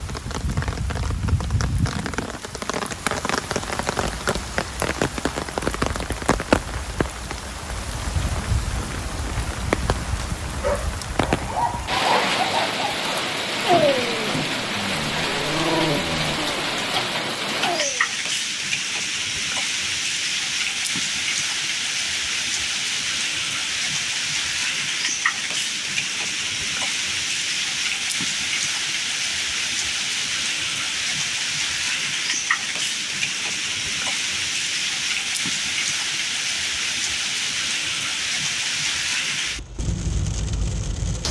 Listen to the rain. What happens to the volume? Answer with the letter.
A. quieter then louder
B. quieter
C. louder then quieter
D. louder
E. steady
E.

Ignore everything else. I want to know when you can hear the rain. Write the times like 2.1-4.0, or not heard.
0.0-41.2.